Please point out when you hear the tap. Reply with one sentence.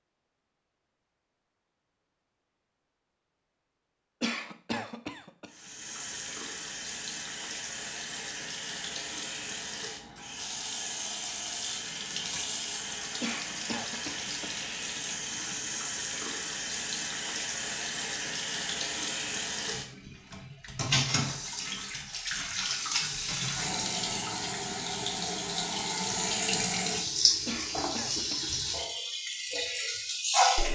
You can hear the tap from 5.5 to 30.6 s.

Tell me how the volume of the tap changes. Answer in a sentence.
The volume of the tap goes up.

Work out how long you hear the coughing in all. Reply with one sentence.
The coughing can be heard for 4 seconds in total.